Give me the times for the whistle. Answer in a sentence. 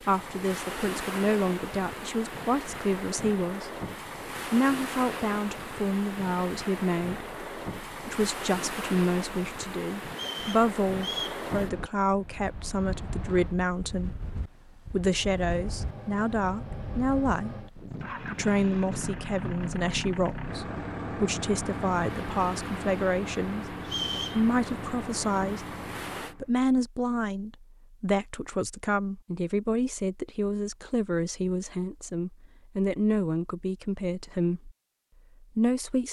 The whistle can be heard from 10.1 to 11.4 s and from 23.8 to 24.4 s.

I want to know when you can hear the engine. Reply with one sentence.
You can hear the engine from 15.0 to 26.5 s.